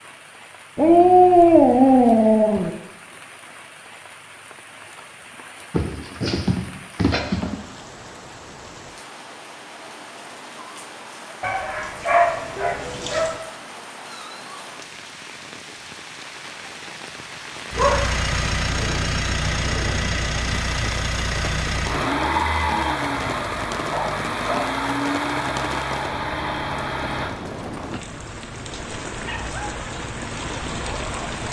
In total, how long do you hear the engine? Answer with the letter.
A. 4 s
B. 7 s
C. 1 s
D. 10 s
D.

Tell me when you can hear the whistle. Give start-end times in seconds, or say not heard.
not heard.